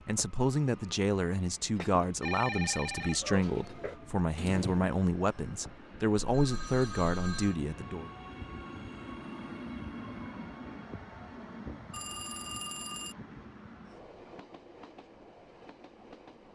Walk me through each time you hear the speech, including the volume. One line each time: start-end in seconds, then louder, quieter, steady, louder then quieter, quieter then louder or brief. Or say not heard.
0.1-8.1 steady.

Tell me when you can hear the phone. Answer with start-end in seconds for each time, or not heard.
1.8-3.8, 6.2-7.5, 11.9-13.2.